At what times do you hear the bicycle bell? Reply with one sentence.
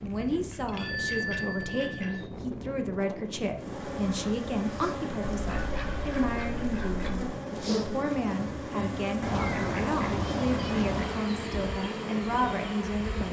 The bicycle bell can be heard from 0.2 to 2.2 s.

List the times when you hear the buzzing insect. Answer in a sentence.
The buzzing insect can be heard from 3.5 to 13.2 s.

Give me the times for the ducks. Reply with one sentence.
You can hear the ducks from 0.3 to 2.3 s, from 5.4 to 7.3 s and from 9.2 to 11.2 s.